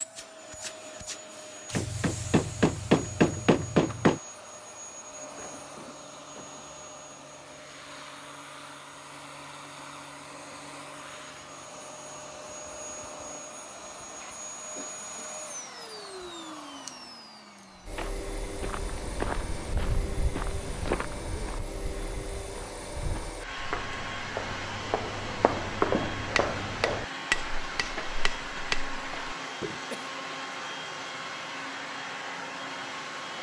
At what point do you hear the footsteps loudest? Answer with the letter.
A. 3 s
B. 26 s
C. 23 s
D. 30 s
B.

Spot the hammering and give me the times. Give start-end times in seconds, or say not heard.
1.7-4.2, 26.4-28.8.